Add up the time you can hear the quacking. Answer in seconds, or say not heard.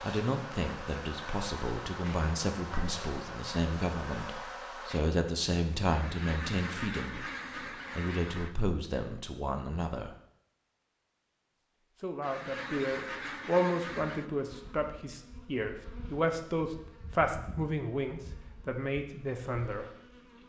5 s.